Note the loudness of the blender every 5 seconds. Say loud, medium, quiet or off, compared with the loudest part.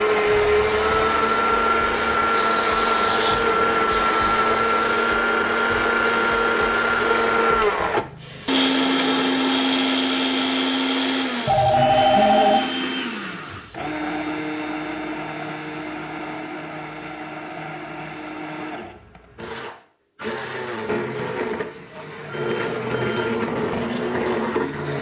loud, loud, medium, quiet, medium.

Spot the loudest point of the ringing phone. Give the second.
12 s.